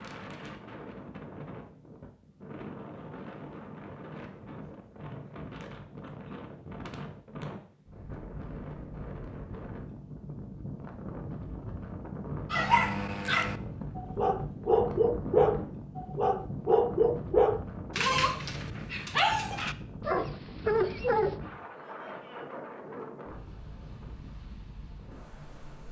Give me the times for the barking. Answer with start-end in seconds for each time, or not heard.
12.5-21.4.